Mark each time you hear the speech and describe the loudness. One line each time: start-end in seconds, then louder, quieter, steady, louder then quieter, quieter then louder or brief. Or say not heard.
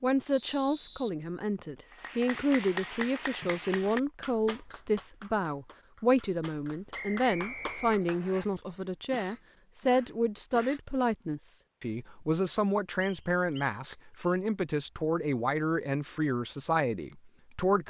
0.0-17.8 steady.